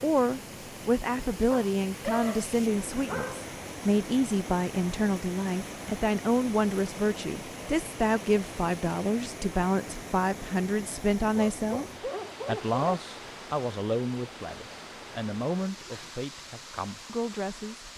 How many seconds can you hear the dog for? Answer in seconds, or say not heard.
4 s.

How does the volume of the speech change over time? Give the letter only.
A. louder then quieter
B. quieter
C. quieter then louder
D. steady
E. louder
B.